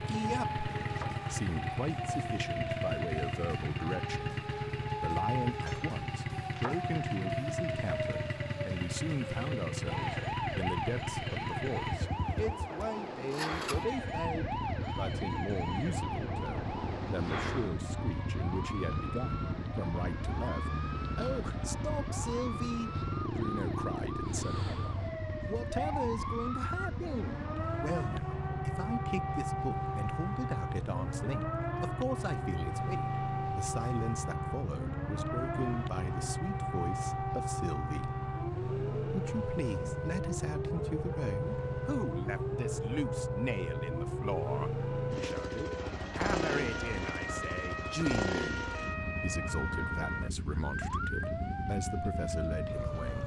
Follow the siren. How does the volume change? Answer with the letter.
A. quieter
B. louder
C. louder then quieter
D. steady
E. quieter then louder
D.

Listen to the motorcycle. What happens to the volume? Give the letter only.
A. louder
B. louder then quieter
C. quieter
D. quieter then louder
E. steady
E.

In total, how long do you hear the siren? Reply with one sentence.
The siren can be heard for 53 seconds in total.